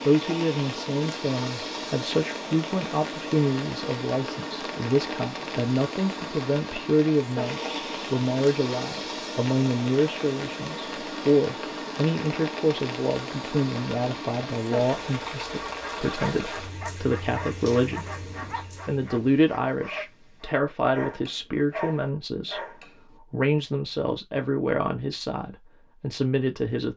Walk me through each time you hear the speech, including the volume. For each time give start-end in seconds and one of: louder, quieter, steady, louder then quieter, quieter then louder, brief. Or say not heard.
0.0-26.9 steady.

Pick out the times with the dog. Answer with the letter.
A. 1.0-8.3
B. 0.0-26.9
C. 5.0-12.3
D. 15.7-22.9
D.